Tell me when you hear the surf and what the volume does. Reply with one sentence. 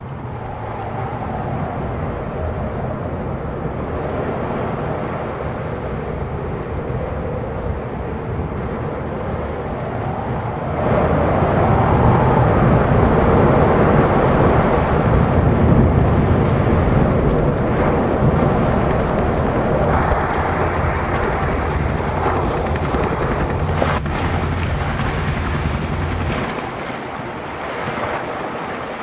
The surf can be heard from 0.0 to 28.9 s, getting louder then quieter.